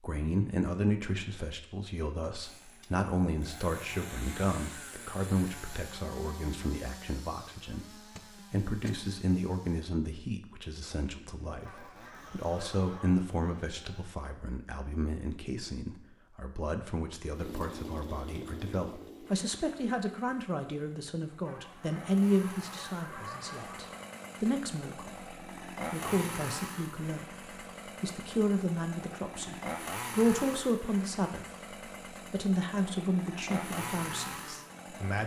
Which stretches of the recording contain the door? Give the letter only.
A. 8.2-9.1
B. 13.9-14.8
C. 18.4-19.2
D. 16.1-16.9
A.